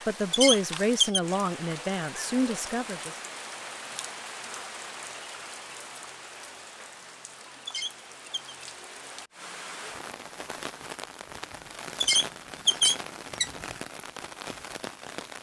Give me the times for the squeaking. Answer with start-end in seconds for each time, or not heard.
0.3-1.2, 7.7-8.6, 12.0-13.5.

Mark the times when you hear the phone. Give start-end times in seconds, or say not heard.
not heard.